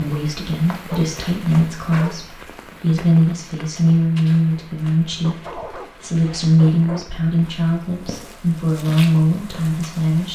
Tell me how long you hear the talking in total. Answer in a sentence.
You can hear the talking for 10 seconds altogether.